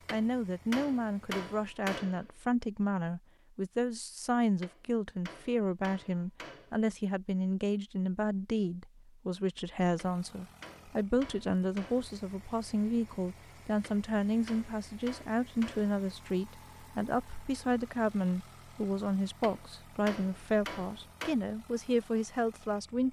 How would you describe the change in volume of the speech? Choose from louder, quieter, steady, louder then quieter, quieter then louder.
steady.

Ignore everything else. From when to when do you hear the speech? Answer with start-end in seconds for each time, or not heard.
0.1-23.0.